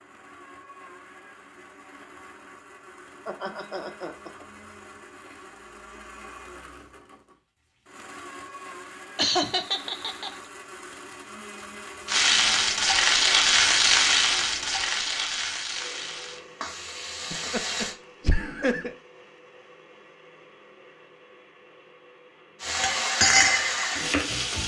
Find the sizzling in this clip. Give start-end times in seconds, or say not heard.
12.1-17.9, 22.6-24.6.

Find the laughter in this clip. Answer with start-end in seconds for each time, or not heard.
3.2-4.5, 9.2-10.3, 17.3-18.9.